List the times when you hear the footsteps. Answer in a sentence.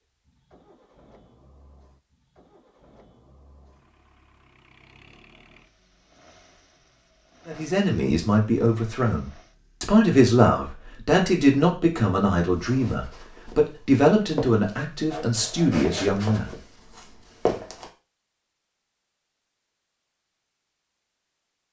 You can hear the footsteps from 12.5 to 17.9 s.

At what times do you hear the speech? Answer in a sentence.
The speech can be heard from 7.5 to 16.6 s.